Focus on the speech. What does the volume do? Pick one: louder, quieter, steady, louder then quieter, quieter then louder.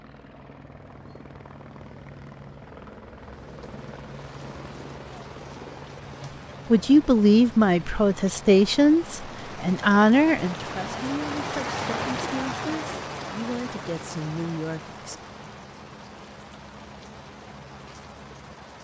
quieter.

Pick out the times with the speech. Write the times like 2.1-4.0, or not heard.
6.2-15.2.